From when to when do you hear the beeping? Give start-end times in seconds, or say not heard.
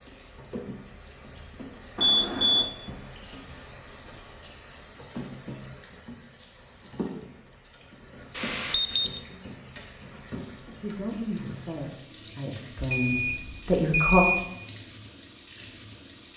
1.9-2.7, 8.3-9.2, 12.9-14.4.